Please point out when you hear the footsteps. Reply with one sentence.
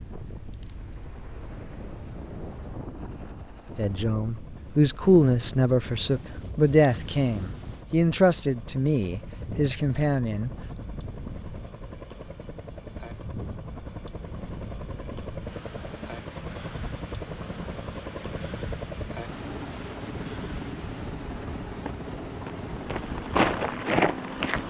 You can hear the footsteps from 21.6 to 24.6 s.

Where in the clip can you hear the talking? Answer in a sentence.
The talking can be heard from 3.8 to 10.5 s.